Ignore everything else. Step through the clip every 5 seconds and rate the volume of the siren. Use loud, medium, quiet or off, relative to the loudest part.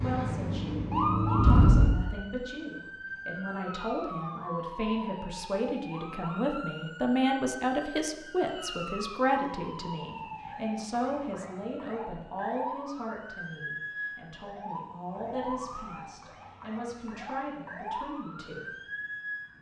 loud, medium, medium, medium.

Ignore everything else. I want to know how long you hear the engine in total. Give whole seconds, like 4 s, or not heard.
2 s.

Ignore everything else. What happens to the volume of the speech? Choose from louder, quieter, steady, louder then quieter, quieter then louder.
louder then quieter.